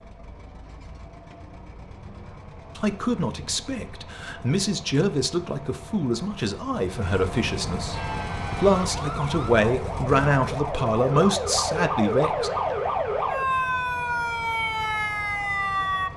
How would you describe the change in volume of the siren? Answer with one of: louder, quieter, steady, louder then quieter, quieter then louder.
louder.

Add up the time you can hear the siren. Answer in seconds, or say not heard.
8 s.